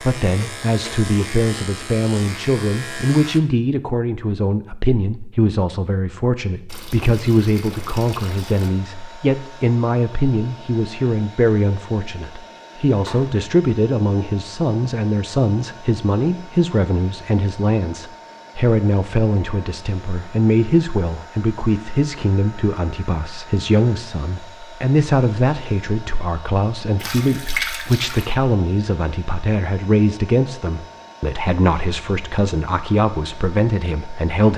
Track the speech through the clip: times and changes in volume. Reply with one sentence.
You can hear the speech from 0.0 to 34.5 s, at a steady volume.